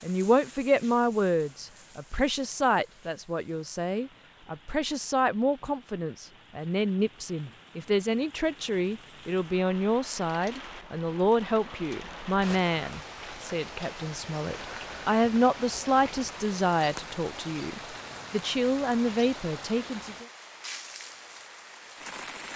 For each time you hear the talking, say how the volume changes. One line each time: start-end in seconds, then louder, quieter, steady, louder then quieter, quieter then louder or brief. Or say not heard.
0.0-20.2 steady.